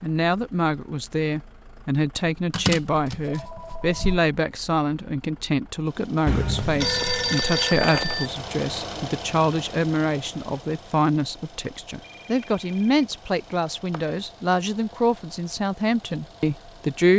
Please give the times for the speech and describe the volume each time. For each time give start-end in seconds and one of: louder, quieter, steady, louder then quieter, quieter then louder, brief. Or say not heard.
0.0-17.1 steady.